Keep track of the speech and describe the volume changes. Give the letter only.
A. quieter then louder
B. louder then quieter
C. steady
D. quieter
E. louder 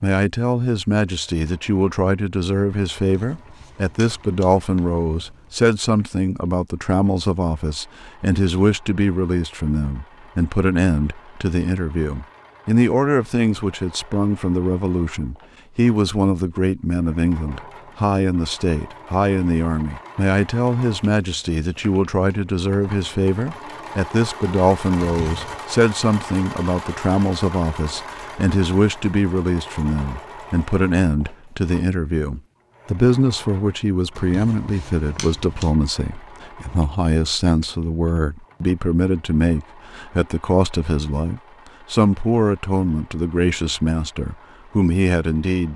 C.